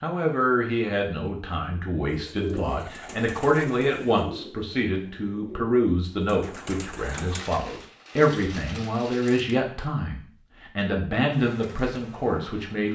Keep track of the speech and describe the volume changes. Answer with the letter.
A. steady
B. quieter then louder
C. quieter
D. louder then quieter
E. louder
A.